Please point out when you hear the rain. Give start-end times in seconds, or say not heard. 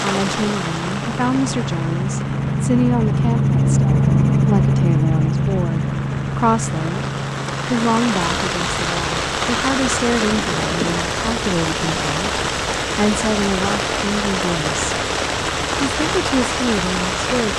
0.0-17.5.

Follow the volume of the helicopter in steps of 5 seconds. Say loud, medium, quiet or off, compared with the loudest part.
loud, medium, quiet, quiet.